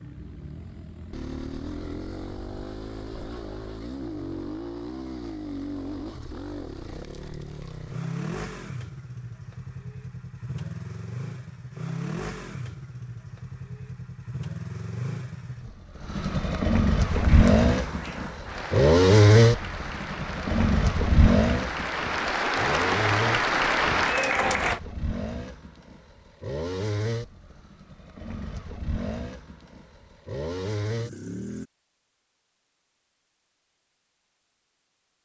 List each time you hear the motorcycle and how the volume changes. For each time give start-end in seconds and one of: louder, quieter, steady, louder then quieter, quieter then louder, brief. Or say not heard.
0.0-31.6 louder then quieter.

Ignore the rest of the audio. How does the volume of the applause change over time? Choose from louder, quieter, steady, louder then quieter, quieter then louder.
louder.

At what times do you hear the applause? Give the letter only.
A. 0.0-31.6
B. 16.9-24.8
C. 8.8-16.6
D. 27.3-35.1
B.